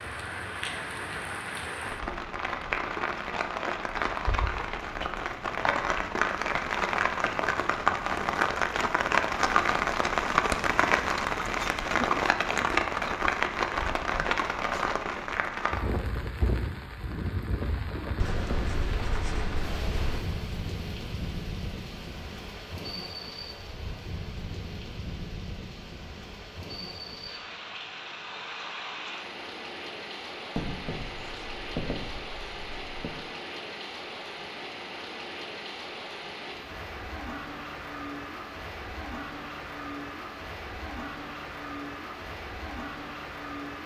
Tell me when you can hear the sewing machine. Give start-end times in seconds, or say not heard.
not heard.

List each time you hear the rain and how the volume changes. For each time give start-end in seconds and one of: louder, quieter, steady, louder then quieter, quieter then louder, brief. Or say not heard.
0.0-43.8 quieter.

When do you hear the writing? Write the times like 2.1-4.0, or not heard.
18.1-20.2, 30.6-33.1.